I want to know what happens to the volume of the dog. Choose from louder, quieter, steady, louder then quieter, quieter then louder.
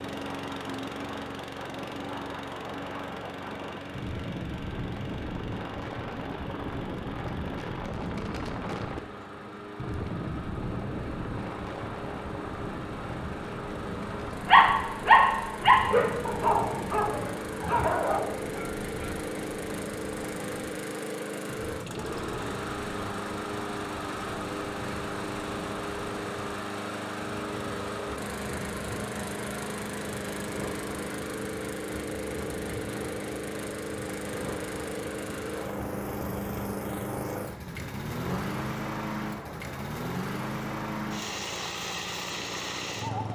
quieter.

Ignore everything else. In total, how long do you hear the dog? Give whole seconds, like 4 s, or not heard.
5 s.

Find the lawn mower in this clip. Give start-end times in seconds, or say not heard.
0.0-43.2.